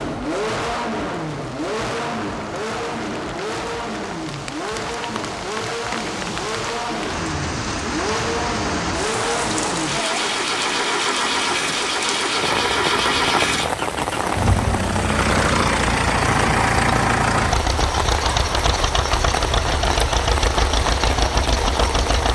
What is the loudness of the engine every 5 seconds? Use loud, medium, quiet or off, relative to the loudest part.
medium, medium, loud, loud, loud.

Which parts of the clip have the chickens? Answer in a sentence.
You can't hear the chickens here.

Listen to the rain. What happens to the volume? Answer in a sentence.
The volume of the rain goes up.